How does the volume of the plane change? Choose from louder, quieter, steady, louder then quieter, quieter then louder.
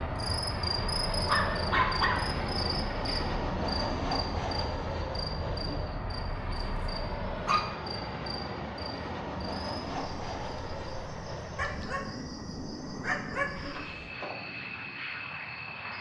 quieter.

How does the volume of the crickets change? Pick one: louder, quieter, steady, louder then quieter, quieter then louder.
quieter then louder.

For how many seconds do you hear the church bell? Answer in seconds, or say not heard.
not heard.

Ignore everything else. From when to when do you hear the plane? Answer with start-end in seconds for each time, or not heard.
0.0-15.9.